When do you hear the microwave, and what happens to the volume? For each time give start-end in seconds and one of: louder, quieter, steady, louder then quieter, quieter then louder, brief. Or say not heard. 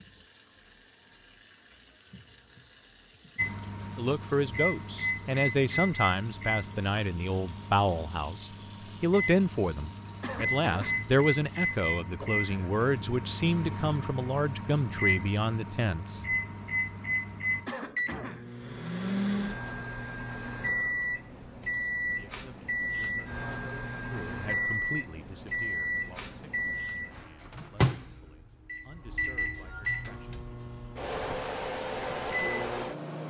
3.4-33.2 steady.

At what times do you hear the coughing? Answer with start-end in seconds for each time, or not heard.
10.2-11.1, 17.6-18.5.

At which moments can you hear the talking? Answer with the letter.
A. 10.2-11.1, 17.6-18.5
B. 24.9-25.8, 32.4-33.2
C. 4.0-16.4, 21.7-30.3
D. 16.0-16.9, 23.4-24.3
C.